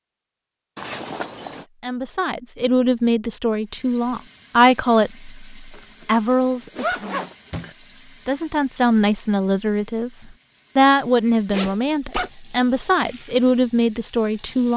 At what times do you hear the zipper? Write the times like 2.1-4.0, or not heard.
0.8-1.6, 5.7-7.8, 11.5-12.3.